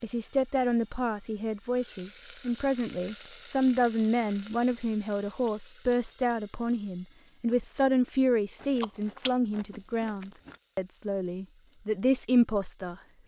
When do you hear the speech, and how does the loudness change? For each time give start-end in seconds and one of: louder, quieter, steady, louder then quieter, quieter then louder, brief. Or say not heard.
0.0-13.2 steady.